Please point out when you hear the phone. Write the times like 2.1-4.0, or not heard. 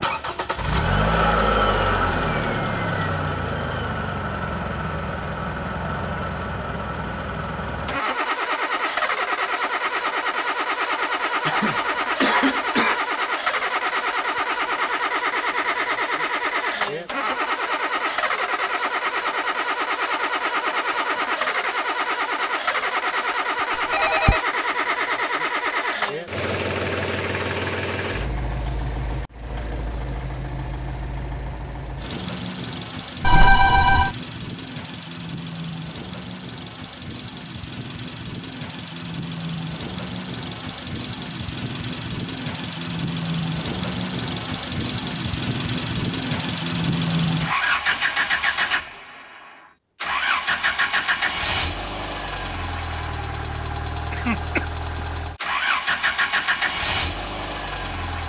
23.9-24.4, 33.2-34.1.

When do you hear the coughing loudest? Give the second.
12 s.